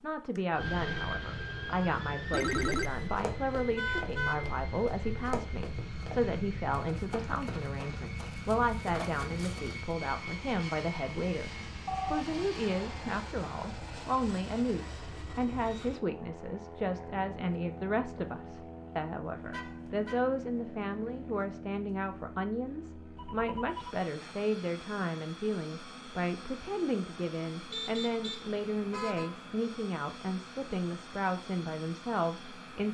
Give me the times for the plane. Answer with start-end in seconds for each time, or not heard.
0.0-32.9.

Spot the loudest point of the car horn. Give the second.
4 s.